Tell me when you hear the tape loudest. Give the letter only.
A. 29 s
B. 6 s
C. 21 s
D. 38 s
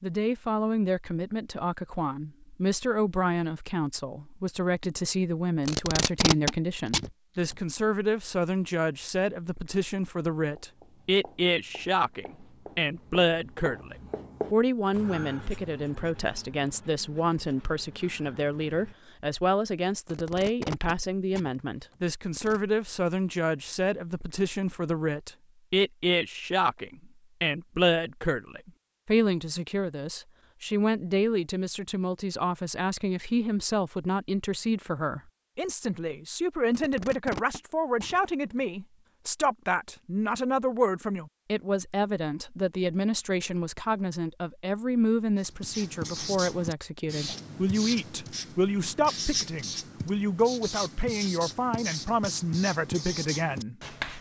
B.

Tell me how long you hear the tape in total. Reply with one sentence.
You can hear the tape for 6 seconds altogether.